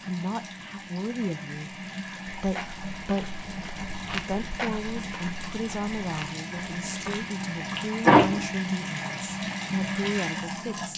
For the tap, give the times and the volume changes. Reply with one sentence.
The tap can be heard from 0.0 to 10.9 s, getting louder.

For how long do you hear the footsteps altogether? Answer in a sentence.
The footsteps can be heard for 5 seconds in total.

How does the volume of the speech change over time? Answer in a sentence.
The loudness of the speech stays about the same.